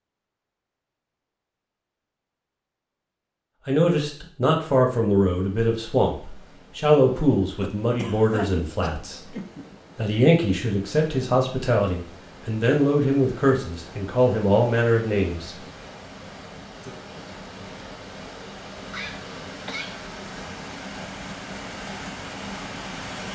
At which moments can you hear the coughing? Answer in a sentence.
The coughing can be heard from 7.6 to 9.6 s and from 18.9 to 20.1 s.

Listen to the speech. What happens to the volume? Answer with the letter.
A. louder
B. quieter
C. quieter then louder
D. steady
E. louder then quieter
D.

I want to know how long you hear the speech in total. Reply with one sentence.
The speech can be heard for 11 seconds in total.